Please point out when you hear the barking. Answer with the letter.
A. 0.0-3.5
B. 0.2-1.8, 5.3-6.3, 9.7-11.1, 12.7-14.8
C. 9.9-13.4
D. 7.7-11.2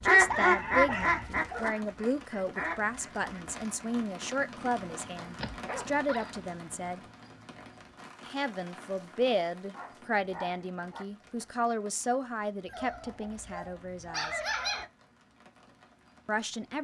B.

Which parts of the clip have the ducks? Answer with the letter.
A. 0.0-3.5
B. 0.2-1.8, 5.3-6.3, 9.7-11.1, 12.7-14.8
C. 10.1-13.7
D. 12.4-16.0
A.